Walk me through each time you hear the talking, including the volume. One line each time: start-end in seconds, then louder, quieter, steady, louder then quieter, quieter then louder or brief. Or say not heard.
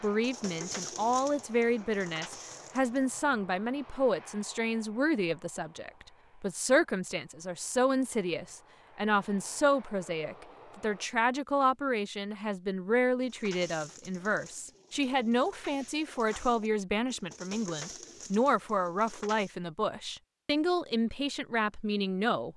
0.0-22.5 steady.